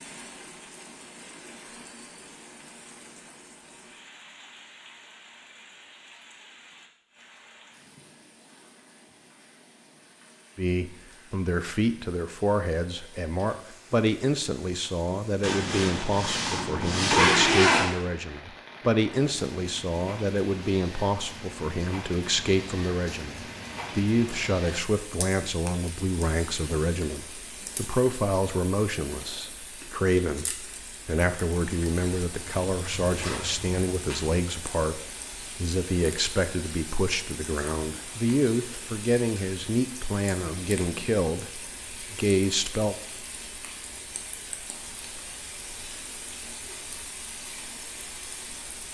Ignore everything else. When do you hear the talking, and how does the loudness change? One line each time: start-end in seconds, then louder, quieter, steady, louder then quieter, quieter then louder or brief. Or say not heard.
10.6-43.0 steady.